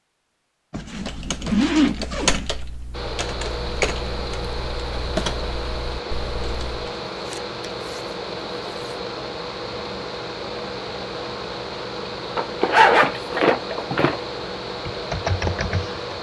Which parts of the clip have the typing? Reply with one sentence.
You can hear the typing from 0.9 to 6.8 s and from 14.8 to 16.1 s.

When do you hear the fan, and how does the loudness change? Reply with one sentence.
You can hear the fan from 2.9 to 16.1 s, at a steady volume.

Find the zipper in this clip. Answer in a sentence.
You can hear the zipper from 0.7 to 2.5 s, from 7.2 to 8.9 s and from 12.3 to 14.2 s.